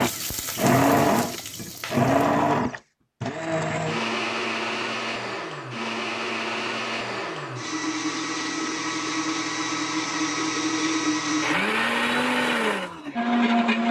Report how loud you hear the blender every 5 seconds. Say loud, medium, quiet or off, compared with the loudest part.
loud, medium, loud.